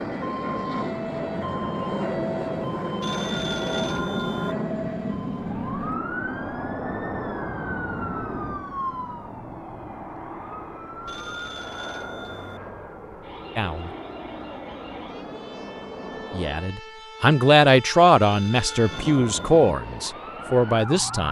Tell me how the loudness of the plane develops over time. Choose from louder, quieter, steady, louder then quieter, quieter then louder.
quieter.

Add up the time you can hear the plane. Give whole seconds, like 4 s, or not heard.
17 s.